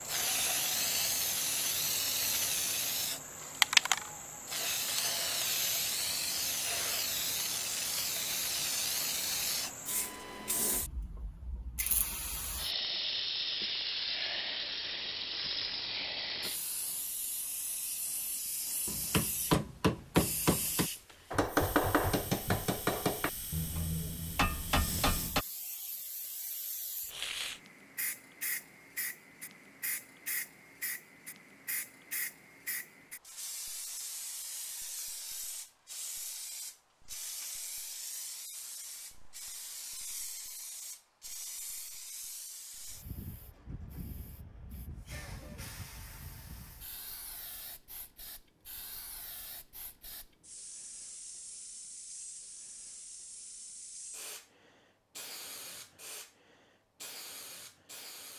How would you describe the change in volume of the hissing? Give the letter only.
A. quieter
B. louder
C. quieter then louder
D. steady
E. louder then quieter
A.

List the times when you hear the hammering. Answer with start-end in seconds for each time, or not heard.
18.9-25.4.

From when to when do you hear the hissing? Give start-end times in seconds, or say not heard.
0.0-58.3.